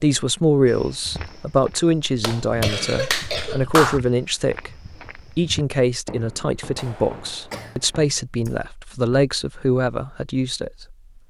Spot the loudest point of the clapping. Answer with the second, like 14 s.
4 s.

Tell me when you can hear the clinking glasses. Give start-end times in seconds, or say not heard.
not heard.